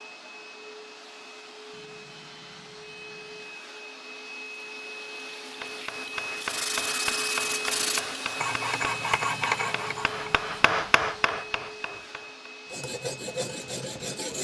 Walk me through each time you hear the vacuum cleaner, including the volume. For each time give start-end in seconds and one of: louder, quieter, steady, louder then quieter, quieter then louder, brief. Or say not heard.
0.0-14.3 louder then quieter.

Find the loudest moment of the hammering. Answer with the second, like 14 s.
11 s.